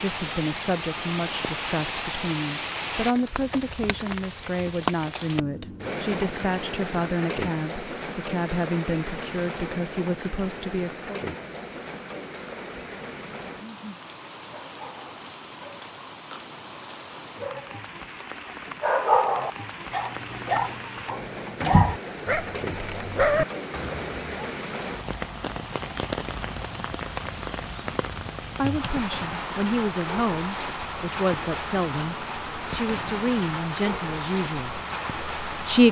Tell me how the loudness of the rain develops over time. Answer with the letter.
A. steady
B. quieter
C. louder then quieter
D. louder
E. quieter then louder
E.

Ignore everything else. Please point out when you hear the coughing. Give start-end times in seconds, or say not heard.
not heard.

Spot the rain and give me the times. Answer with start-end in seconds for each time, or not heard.
0.0-35.8.